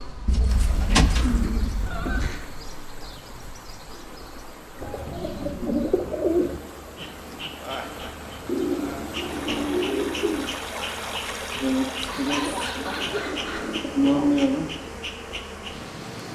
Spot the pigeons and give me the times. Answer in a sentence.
You can hear the pigeons from 0.2 to 2.3 s, from 4.8 to 6.6 s, from 8.4 to 10.6 s and from 12.3 to 14.3 s.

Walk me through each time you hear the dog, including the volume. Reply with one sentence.
You can't hear the dog here.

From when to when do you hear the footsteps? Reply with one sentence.
The footsteps can't be heard in this clip.